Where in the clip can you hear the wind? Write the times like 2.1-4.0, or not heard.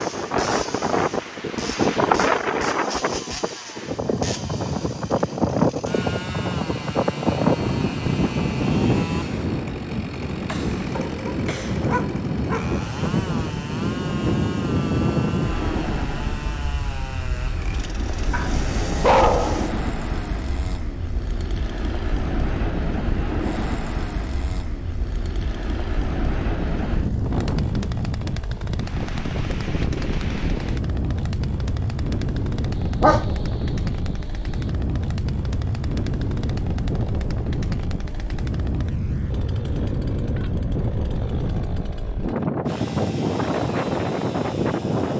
0.0-45.1.